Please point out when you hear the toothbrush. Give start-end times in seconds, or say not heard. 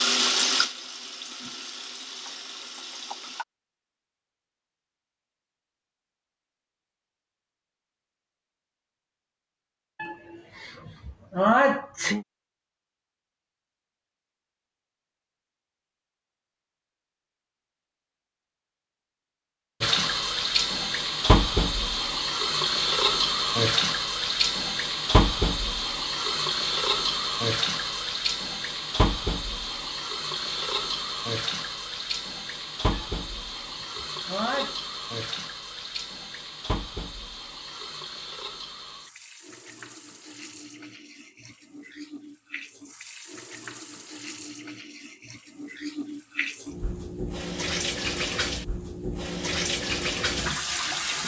not heard.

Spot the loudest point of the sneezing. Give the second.
12 s.